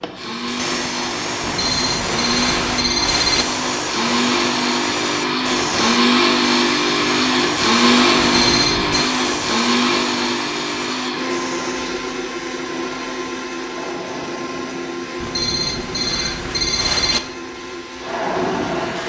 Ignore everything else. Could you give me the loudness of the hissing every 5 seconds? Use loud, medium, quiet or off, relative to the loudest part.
loud, loud, medium, loud.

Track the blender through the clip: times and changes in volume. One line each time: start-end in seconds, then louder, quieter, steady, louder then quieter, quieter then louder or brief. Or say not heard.
0.0-19.0 louder then quieter.